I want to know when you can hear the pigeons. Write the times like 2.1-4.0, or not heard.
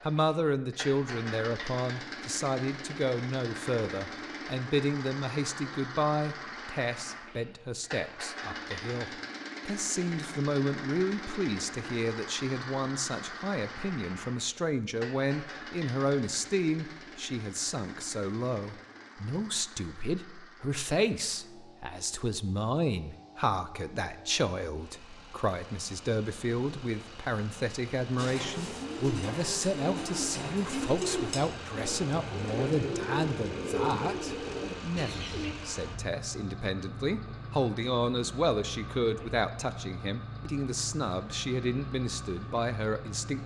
28.1-35.5.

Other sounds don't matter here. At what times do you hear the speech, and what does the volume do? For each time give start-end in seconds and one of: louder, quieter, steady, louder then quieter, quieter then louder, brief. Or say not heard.
0.0-43.4 steady.